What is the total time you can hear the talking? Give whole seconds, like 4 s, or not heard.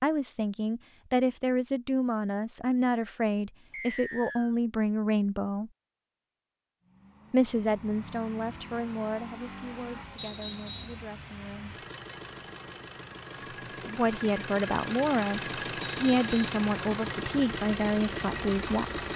16 s.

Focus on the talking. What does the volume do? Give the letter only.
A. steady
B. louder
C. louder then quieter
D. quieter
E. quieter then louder
E.